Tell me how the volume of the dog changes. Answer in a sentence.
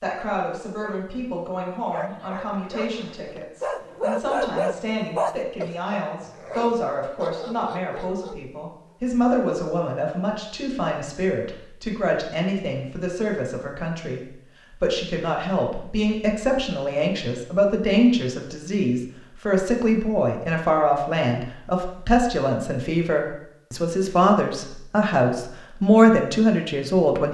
The loudness of the dog goes up, then down.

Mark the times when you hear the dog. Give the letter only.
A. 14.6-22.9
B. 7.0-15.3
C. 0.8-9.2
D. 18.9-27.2
C.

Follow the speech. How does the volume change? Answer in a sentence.
The volume of the speech goes up.